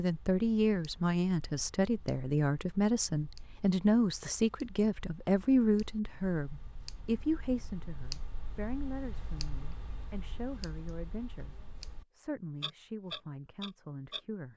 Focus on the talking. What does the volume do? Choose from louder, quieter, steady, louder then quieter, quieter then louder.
quieter.